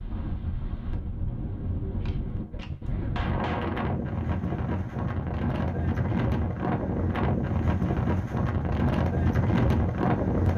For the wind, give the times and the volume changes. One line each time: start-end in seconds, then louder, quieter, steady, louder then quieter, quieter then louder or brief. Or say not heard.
0.0-10.5 louder.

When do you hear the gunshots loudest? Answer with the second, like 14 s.
3 s.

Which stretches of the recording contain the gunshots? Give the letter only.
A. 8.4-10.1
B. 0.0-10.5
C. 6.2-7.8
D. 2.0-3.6
D.